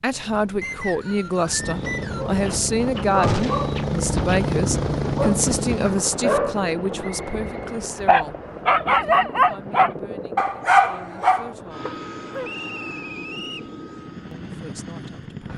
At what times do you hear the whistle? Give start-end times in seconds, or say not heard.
0.6-2.2, 7.0-7.5, 12.4-13.7.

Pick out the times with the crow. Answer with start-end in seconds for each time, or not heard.
not heard.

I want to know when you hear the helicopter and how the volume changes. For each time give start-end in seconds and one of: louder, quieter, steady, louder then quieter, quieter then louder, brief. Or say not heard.
0.0-15.5 louder then quieter.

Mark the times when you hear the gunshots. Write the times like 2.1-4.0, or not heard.
3.2-3.8.